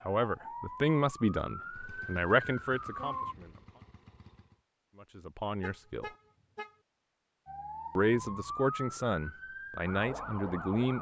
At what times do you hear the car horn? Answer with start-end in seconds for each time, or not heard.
3.0-3.5, 5.6-6.8.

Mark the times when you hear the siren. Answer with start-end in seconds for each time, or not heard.
0.0-3.4, 7.5-10.9.